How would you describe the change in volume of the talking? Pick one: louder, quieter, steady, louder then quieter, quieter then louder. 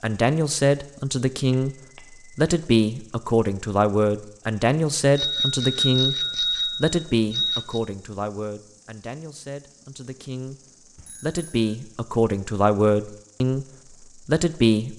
quieter then louder.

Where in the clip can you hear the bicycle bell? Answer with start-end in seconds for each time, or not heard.
1.5-2.5, 5.2-7.8, 10.9-11.8.